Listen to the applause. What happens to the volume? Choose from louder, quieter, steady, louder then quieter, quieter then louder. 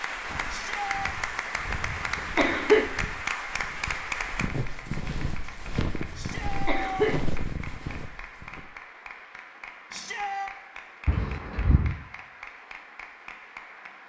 quieter.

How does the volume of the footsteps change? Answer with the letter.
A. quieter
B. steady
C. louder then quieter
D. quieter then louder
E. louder
E.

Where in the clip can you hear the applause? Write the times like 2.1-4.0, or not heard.
0.0-14.0.